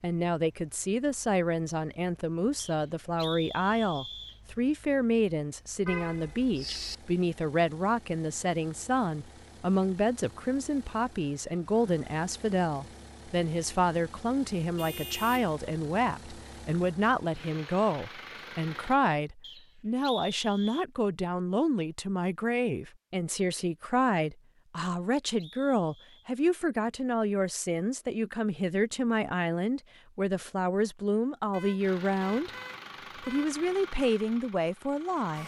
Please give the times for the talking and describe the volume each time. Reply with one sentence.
You can hear the talking from 0.0 to 32.5 s, at a steady volume; and briefly from 33.2 to 35.4 s.